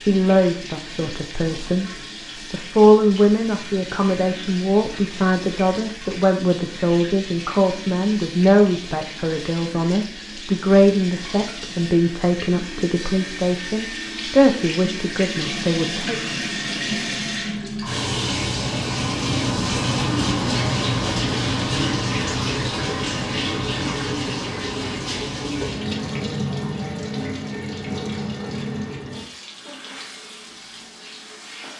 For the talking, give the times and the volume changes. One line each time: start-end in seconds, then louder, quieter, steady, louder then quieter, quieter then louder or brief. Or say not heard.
0.0-1.9 brief
2.5-16.2 steady.